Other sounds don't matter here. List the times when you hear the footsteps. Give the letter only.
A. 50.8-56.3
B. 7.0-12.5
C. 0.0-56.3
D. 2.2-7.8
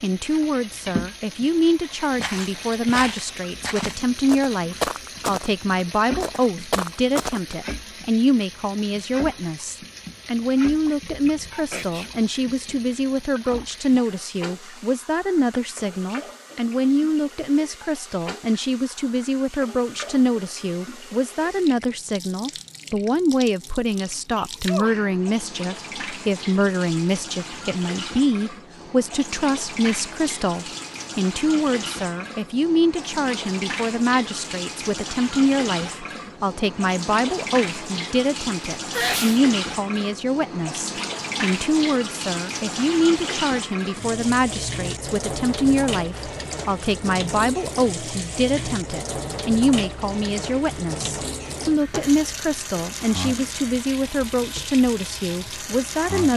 D.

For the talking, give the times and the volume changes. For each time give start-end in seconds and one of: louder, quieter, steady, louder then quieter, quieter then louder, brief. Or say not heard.
0.0-56.3 steady.